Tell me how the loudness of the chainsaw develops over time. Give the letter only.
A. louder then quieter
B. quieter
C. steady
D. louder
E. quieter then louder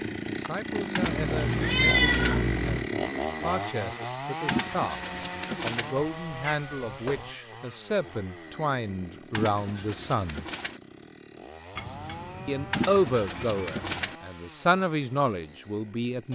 B.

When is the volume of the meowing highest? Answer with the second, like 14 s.
2 s.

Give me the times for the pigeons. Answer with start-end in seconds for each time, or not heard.
0.9-2.4, 4.5-6.0, 9.3-10.8, 12.7-14.2.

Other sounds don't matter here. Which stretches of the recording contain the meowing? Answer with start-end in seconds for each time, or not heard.
1.0-2.9, 6.0-7.3, 11.8-14.2.